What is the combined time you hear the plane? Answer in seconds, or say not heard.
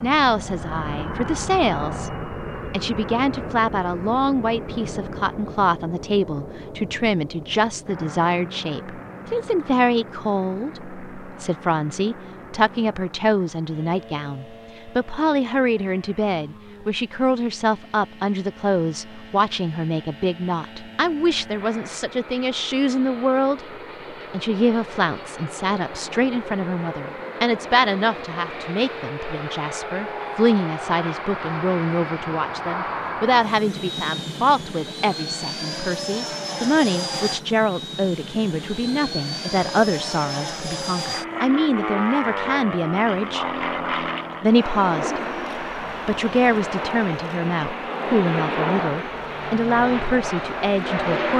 51 s.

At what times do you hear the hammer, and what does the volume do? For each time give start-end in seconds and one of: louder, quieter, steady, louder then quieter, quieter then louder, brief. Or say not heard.
not heard.